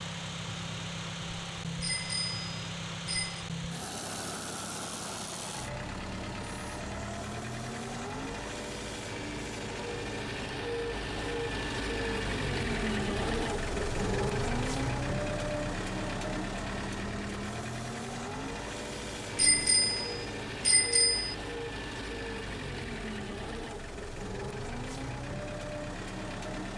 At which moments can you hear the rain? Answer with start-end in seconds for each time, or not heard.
not heard.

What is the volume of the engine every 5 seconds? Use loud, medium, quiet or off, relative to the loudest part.
medium, medium, loud, loud, medium, medium.